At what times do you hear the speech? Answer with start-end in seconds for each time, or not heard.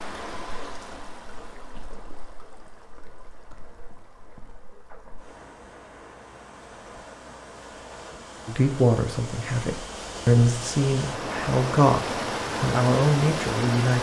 8.4-13.9.